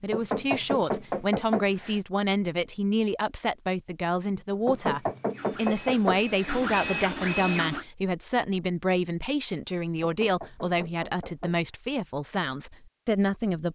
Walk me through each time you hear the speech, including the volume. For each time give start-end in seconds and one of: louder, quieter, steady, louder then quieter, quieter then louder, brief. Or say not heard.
0.0-13.6 steady.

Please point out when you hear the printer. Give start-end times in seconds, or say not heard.
5.3-7.8.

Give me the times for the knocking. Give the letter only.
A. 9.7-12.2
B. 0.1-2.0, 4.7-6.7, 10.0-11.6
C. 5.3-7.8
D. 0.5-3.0
B.